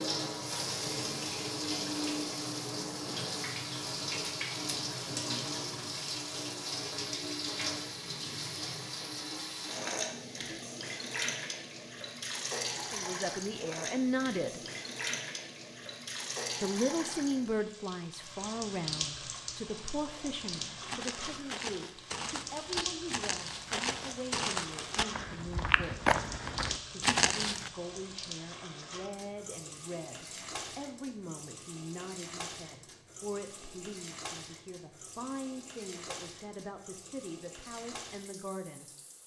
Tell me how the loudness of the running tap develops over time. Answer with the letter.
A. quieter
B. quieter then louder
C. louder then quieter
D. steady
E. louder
A.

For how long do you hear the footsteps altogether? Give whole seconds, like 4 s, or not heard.
7 s.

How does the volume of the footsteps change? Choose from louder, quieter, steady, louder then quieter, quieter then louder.
louder.